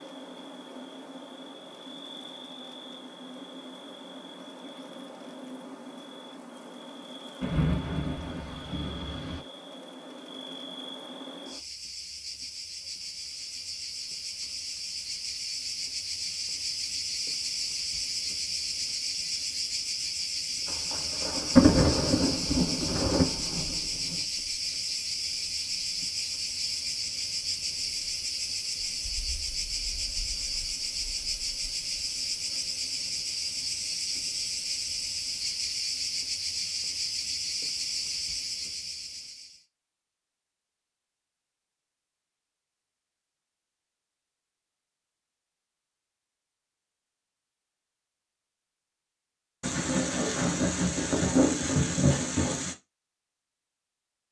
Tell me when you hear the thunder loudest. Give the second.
22 s.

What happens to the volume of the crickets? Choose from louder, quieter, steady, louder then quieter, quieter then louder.
louder.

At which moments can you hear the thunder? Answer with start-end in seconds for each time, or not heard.
7.4-9.4, 20.9-23.6, 49.6-52.8.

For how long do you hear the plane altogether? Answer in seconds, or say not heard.
not heard.